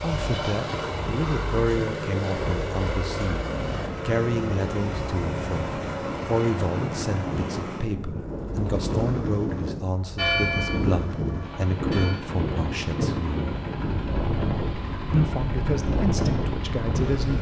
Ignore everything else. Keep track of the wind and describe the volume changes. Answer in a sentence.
The volume of the wind goes up.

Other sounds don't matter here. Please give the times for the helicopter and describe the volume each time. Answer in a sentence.
The helicopter can be heard from 0.0 to 17.3 s, getting quieter.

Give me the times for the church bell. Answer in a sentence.
You can hear the church bell from 10.2 to 12.2 s.